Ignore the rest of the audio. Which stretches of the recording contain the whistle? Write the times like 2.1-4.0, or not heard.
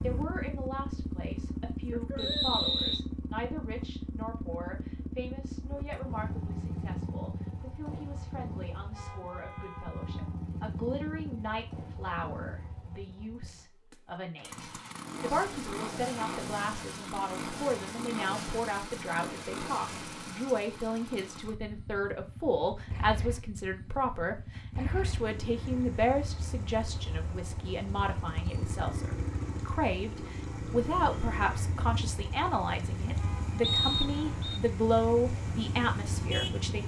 2.1-3.0, 33.6-34.6.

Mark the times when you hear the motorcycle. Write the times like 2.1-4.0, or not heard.
0.0-36.8.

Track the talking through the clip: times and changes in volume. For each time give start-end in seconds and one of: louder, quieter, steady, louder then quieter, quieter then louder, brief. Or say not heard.
0.0-36.8 louder.